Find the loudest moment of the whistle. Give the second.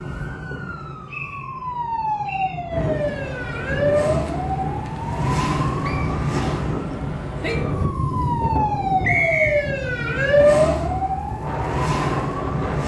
9 s.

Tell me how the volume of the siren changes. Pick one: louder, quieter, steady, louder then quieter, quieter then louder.
louder.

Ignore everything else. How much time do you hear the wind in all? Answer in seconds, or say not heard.
10 s.